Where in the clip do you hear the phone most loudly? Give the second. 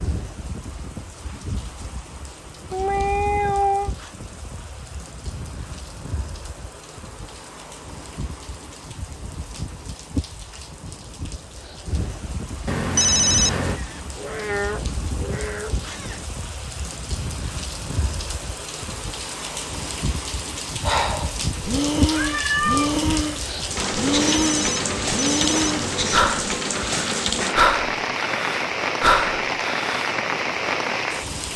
13 s.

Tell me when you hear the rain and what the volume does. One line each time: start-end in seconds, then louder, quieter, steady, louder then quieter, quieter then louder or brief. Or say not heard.
0.0-31.5 louder.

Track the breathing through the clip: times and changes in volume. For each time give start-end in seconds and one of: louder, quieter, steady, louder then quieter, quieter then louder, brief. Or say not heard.
20.8-30.1 steady.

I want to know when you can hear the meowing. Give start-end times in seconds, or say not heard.
2.7-3.9, 13.8-16.2, 22.1-23.0.